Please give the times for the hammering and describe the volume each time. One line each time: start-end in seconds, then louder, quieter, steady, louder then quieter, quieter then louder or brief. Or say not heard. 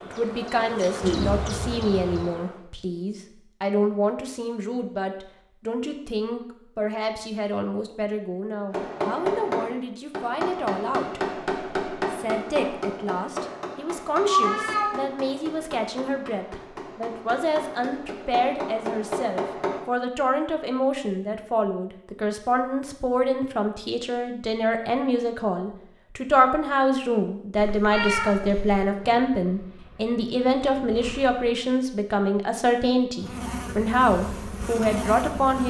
8.7-19.8 quieter then louder.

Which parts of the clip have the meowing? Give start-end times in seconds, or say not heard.
1.0-2.2, 14.1-15.1, 27.6-28.9.